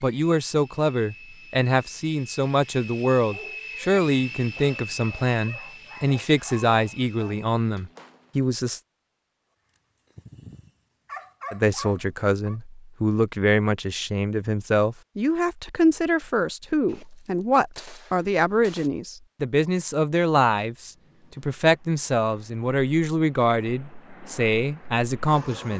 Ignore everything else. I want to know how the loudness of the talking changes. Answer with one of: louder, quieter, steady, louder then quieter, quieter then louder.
steady.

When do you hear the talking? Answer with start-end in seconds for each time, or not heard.
0.0-8.8, 11.5-25.7.